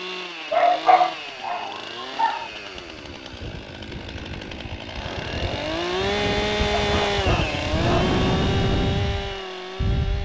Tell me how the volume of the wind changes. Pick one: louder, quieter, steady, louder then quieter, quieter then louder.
louder.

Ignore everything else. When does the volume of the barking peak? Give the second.
1 s.